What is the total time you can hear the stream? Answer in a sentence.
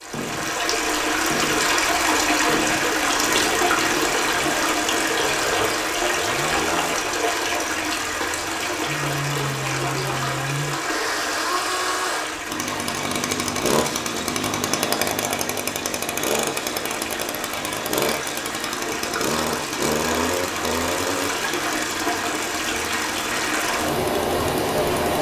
The stream can be heard for 25 seconds in total.